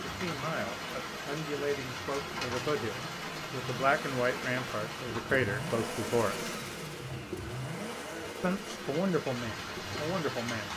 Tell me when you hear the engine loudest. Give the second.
6 s.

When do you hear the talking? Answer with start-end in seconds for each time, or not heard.
0.0-6.5, 8.4-10.7.